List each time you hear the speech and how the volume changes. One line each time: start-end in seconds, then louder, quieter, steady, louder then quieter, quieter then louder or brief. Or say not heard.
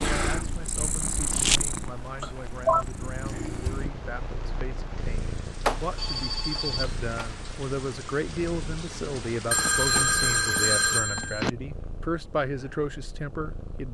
0.0-13.8 louder.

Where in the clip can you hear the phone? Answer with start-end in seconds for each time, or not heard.
2.2-2.9, 5.7-7.3, 9.5-11.5.